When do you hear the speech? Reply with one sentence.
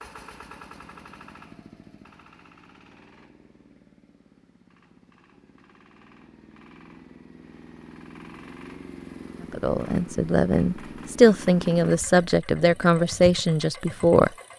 The speech can be heard from 9.5 to 14.3 s.